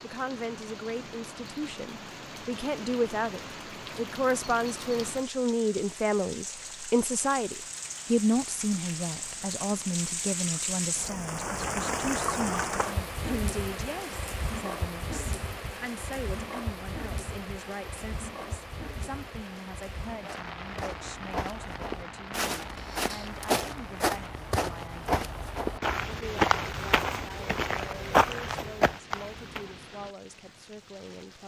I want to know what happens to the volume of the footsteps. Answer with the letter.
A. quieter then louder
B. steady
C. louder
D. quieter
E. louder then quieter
C.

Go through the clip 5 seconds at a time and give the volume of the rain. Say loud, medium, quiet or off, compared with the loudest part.
medium, medium, loud, medium, medium, quiet, quiet.